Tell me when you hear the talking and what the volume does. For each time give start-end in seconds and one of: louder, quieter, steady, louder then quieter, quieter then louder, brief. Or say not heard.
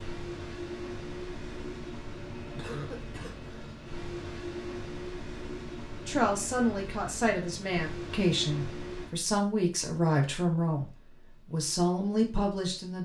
6.0-13.0 steady.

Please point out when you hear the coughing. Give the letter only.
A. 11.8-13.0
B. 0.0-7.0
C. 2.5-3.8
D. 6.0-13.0
C.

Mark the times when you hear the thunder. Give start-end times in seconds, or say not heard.
not heard.